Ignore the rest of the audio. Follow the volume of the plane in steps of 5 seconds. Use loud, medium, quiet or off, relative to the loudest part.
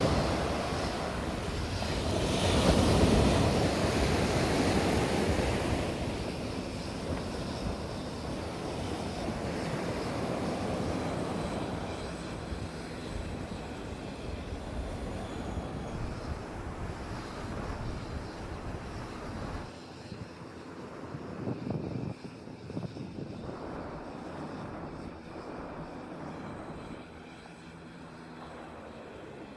loud, loud, loud, medium, medium, medium.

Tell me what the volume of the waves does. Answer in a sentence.
The volume of the waves goes down.